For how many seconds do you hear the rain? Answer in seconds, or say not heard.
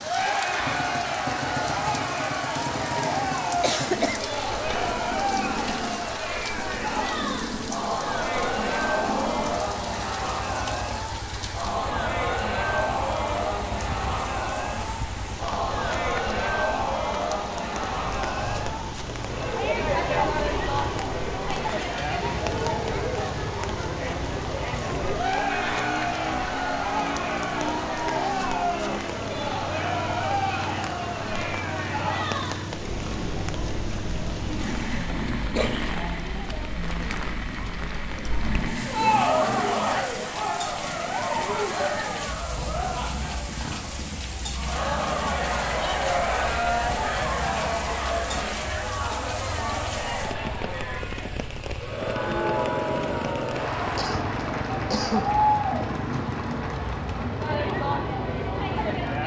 59 s.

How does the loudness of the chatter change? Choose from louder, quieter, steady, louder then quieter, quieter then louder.
steady.